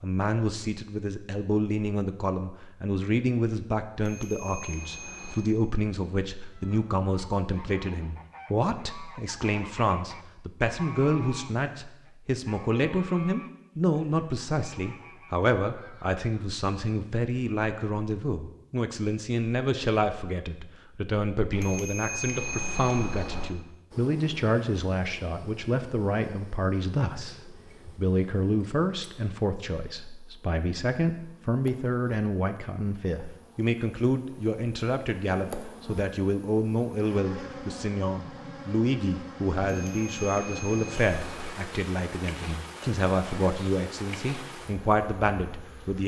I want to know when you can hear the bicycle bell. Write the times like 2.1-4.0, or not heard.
4.0-5.5, 21.5-23.5, 39.6-41.5.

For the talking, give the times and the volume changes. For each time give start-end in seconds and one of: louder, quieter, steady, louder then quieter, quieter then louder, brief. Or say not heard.
0.0-46.0 steady.